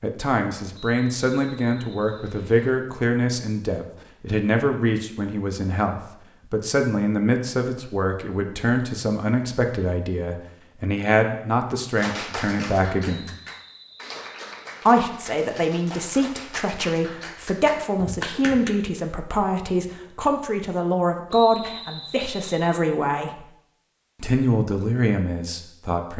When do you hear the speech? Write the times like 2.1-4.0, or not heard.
0.0-13.3, 14.8-23.4, 24.2-26.1.